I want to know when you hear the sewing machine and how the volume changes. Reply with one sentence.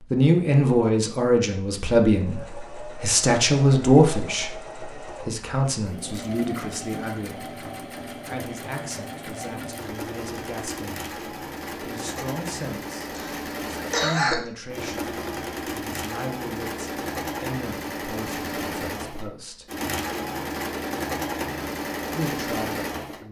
The sewing machine can be heard from 2.0 to 23.2 s, getting louder.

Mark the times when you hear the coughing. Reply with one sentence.
The coughing can be heard from 13.1 to 14.5 s.